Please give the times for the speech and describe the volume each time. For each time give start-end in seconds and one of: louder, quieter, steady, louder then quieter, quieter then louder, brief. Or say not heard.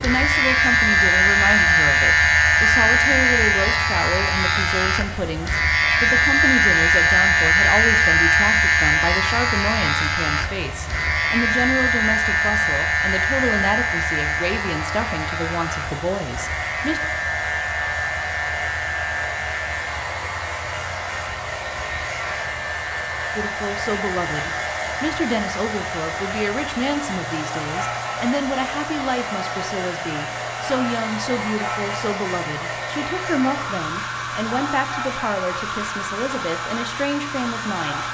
0.0-17.0 steady
23.4-38.0 steady.